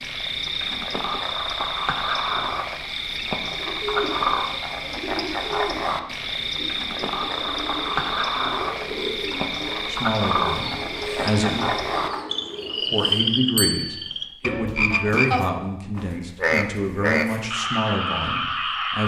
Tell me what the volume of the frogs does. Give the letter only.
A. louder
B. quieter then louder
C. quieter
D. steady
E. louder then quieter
D.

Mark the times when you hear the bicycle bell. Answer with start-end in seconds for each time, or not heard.
13.6-14.1.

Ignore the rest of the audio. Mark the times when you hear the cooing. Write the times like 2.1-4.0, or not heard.
3.5-13.6.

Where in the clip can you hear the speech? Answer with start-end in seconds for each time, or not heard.
9.9-11.7, 12.9-19.0.